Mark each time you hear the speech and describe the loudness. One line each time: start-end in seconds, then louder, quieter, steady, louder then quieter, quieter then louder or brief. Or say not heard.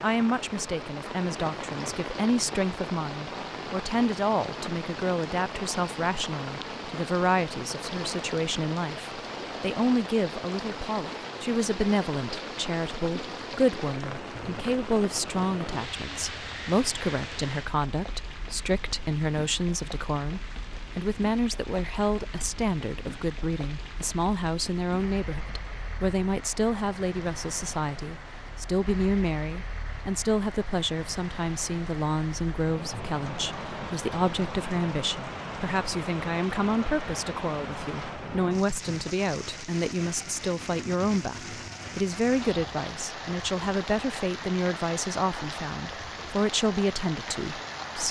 0.0-48.0 steady.